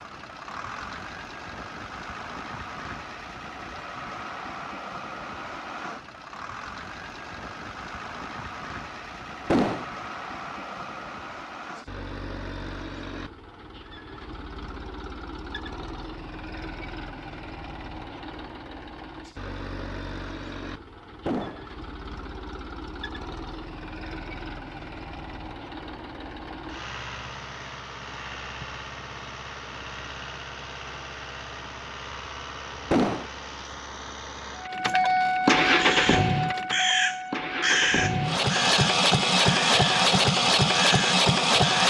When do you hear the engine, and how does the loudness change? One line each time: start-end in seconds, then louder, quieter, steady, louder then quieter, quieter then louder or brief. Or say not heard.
0.0-41.8 louder.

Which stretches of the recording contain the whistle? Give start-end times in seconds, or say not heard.
not heard.